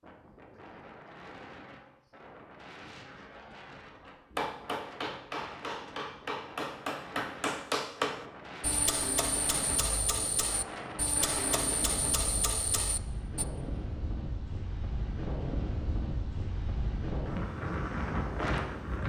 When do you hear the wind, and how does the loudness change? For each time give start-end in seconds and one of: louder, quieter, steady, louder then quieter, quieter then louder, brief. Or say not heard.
0.0-19.0 louder.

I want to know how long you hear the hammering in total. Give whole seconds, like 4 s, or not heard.
9 s.